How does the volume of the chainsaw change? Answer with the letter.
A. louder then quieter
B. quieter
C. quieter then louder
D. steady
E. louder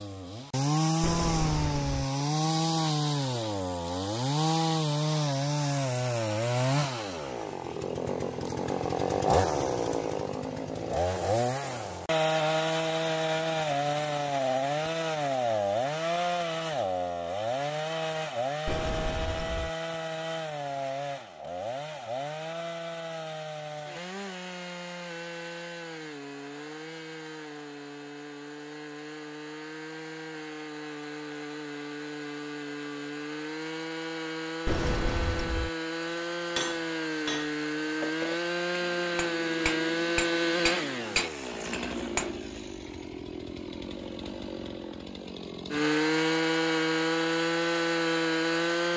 C.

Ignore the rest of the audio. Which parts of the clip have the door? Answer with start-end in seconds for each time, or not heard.
1.0-2.1, 18.6-19.7, 34.6-35.7.